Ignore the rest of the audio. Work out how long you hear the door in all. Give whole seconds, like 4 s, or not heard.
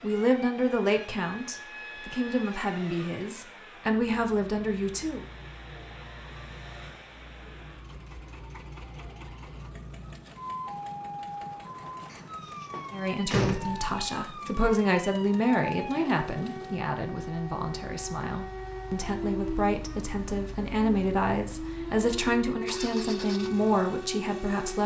2 s.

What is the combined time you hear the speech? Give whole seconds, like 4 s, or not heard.
17 s.